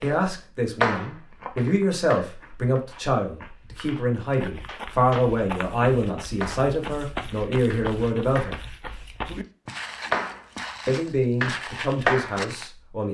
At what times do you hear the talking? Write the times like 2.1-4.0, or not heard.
0.0-8.6, 10.8-13.0.